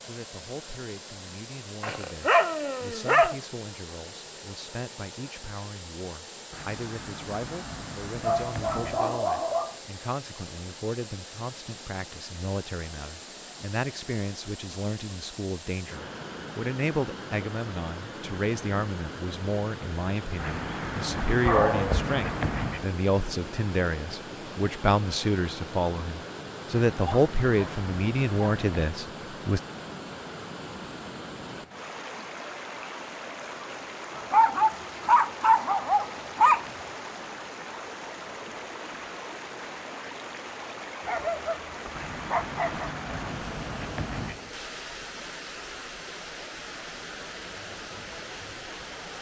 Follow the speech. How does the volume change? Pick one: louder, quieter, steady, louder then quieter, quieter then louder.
louder.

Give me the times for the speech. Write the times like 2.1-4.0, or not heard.
0.1-29.6.